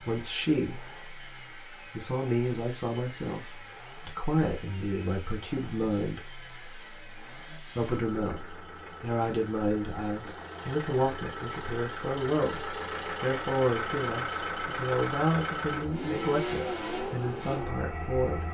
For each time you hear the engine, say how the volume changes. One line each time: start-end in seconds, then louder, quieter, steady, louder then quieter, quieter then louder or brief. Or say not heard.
0.0-18.4 louder.